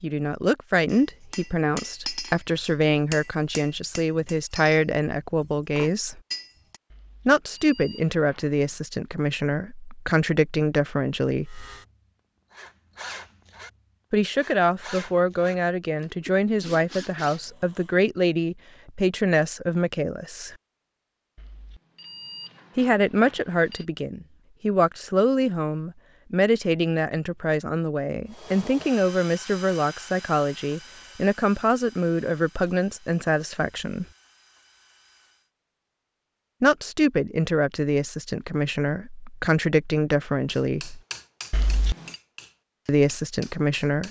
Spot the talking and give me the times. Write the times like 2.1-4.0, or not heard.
0.0-6.2, 7.2-11.7, 14.1-20.6, 22.8-34.0, 36.6-41.0, 42.9-44.0.